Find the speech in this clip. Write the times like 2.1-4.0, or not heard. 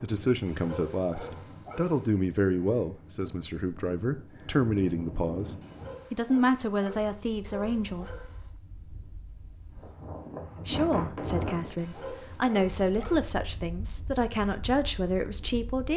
0.0-8.3, 10.6-15.9.